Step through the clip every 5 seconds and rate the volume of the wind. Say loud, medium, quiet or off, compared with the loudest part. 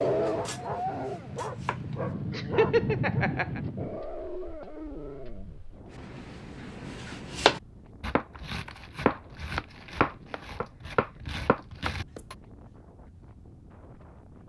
loud, quiet, quiet.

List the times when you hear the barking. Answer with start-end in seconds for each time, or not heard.
0.0-5.7.